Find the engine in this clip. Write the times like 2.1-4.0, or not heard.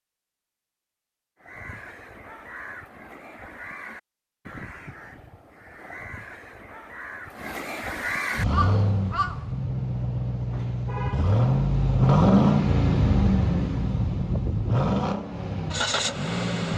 8.3-16.7.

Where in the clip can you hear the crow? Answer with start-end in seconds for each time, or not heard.
1.4-9.5.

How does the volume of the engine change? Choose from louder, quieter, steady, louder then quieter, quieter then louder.
louder then quieter.